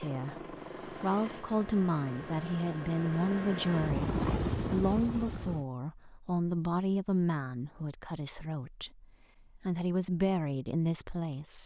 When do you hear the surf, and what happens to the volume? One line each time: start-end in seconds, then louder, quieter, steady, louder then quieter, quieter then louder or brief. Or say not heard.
not heard.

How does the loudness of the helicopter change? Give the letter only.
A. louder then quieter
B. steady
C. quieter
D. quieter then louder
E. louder
E.